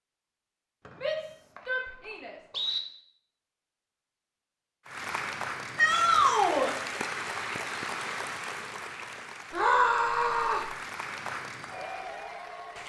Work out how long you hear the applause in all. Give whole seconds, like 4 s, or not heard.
8 s.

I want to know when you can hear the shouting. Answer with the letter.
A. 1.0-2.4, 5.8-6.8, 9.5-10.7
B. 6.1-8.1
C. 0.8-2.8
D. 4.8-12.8
A.